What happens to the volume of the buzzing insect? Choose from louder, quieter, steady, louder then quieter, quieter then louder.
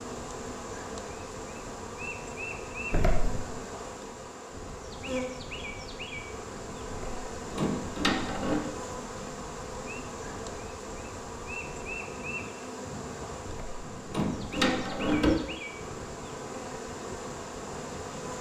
steady.